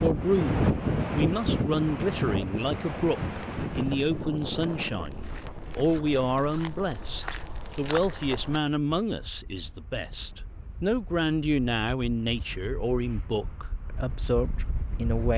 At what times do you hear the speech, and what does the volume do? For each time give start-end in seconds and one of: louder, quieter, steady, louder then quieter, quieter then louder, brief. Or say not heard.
0.0-15.3 steady.